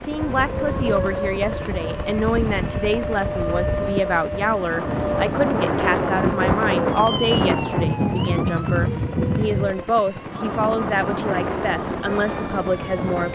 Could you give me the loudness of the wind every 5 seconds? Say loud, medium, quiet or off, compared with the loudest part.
medium, loud, medium.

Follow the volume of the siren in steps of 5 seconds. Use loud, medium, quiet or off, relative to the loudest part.
loud, loud, medium.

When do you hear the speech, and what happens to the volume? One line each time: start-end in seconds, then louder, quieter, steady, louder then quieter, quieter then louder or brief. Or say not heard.
0.0-13.3 steady.